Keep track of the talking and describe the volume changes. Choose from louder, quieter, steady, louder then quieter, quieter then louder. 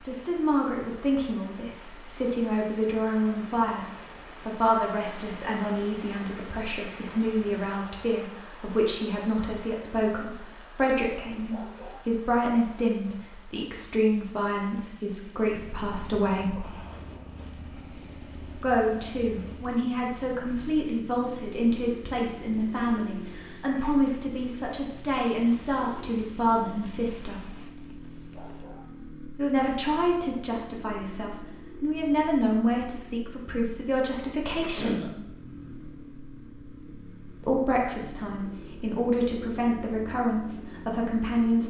steady.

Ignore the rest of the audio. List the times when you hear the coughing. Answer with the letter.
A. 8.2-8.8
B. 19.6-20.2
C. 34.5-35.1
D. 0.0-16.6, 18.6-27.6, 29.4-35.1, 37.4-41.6
C.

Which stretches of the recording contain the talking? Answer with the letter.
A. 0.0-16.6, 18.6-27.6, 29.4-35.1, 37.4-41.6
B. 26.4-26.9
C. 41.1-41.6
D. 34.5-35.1
A.